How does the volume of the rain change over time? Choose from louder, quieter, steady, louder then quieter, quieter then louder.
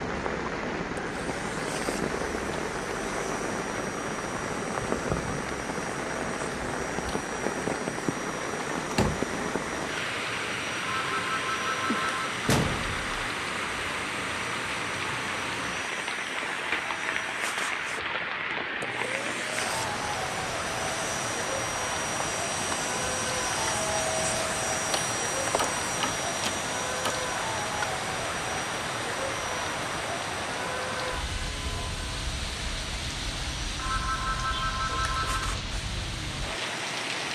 steady.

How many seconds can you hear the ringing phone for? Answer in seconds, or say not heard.
3 s.